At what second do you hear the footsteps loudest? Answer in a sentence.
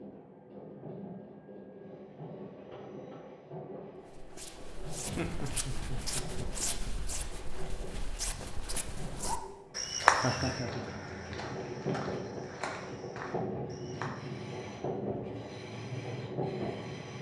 The volume of the footsteps peaks at 10 seconds.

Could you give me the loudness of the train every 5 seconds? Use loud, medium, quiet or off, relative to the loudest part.
medium, medium, loud, loud.